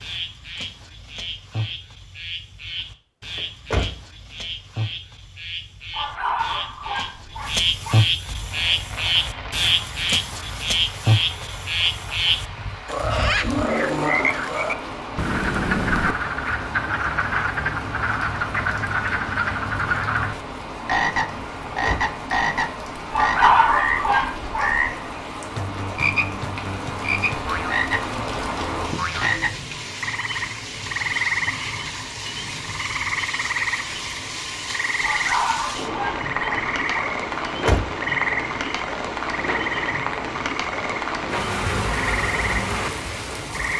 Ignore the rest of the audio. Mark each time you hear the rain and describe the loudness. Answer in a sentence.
You can hear the rain from 8.2 to 43.7 s, getting louder.